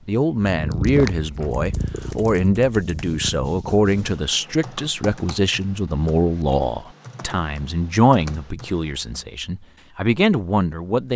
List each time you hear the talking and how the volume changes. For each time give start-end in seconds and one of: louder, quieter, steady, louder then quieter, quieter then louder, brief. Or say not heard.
0.1-11.1 steady.